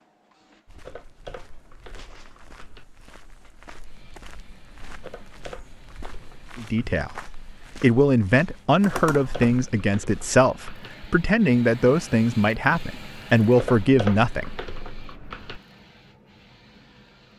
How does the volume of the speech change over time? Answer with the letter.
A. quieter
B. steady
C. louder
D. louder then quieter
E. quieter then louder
B.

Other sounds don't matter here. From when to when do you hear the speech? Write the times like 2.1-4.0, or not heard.
6.5-14.6.